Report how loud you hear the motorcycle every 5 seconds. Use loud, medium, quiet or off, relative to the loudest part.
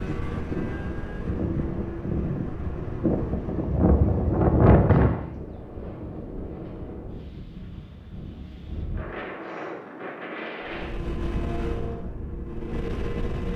loud, off, loud.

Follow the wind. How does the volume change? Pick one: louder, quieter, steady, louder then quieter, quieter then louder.
louder then quieter.